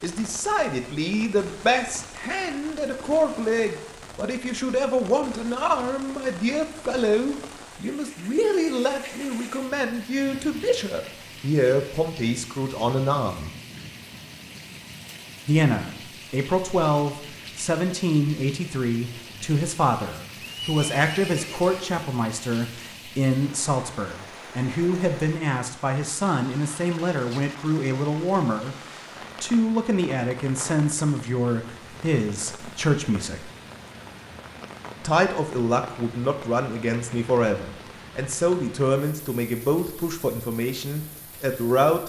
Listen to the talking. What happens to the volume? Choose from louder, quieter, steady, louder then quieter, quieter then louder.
steady.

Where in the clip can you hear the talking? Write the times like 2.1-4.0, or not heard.
0.0-13.6, 15.4-33.5, 35.0-42.0.